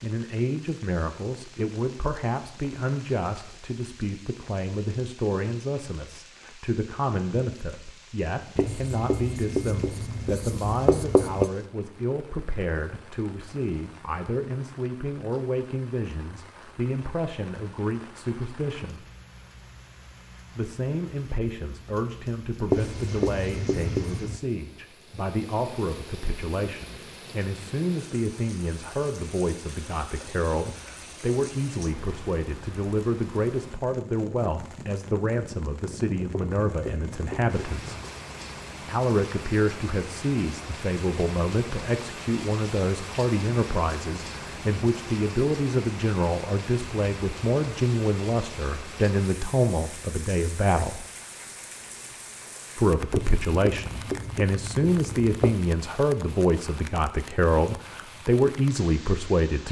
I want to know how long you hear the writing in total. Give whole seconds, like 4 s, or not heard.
9 s.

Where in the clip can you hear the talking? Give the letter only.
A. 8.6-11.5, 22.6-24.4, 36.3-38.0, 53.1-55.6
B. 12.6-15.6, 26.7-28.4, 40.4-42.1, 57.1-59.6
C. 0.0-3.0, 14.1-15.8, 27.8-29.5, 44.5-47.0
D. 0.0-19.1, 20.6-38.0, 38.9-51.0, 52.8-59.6
D.